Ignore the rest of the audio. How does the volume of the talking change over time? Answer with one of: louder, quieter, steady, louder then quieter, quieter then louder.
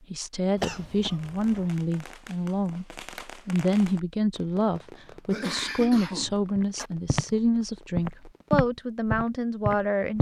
steady.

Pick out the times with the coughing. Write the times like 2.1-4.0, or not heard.
0.6-1.6, 5.3-6.9.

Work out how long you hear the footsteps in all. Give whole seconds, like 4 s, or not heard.
3 s.